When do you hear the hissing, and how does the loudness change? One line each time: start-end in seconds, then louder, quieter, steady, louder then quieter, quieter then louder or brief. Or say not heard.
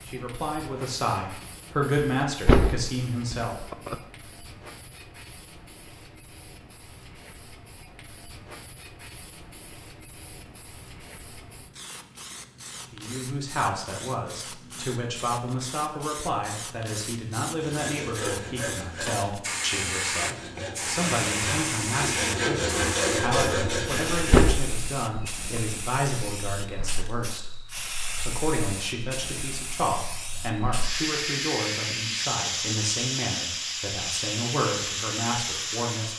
0.0-36.1 louder.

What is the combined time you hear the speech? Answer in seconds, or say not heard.
27 s.